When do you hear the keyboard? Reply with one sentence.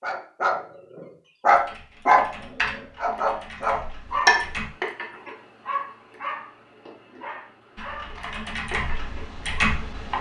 The keyboard can be heard from 1.4 to 4.7 s and from 7.8 to 10.1 s.